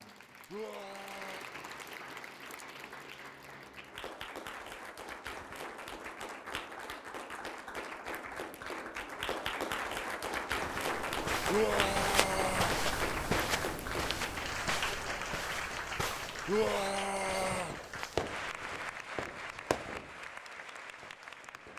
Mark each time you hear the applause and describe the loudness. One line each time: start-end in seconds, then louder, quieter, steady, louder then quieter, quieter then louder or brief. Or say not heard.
0.0-21.7 louder then quieter.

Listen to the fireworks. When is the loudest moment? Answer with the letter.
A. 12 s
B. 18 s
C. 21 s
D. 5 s
B.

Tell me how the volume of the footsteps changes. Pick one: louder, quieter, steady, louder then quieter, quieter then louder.
quieter.